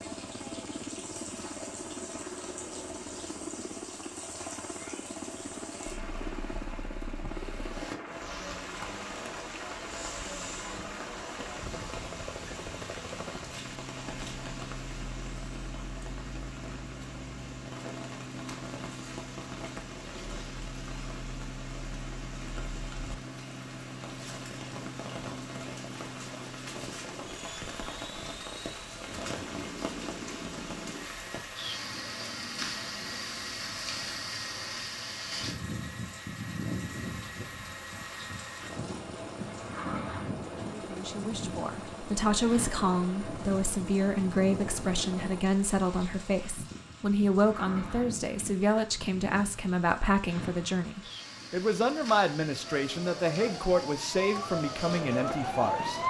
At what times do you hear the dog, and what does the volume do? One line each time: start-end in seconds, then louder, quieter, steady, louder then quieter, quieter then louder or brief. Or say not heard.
not heard.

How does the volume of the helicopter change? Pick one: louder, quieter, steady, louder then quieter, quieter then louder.
steady.